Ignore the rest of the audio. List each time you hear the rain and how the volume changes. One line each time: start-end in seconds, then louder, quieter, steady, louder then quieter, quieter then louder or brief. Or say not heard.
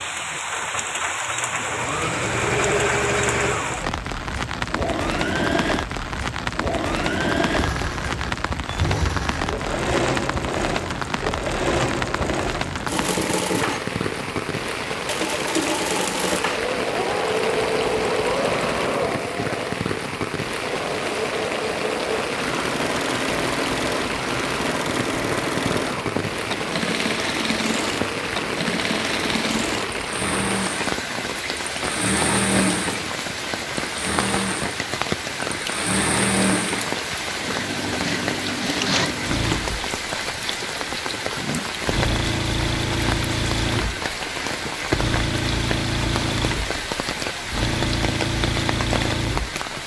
0.0-49.8 steady.